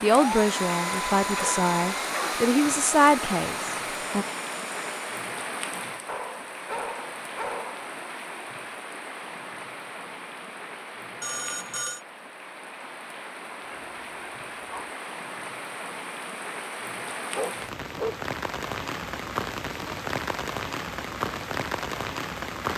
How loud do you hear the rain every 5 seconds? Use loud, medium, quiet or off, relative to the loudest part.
loud, medium, medium, loud, loud.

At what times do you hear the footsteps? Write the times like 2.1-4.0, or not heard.
not heard.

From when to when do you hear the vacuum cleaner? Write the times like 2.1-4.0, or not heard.
0.1-5.2.